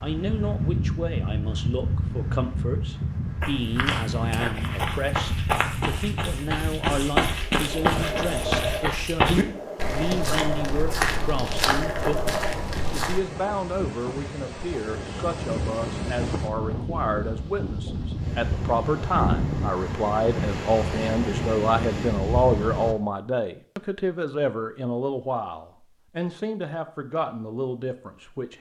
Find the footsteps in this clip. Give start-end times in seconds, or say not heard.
3.4-13.2.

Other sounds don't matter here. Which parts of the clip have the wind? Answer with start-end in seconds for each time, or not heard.
0.0-22.9.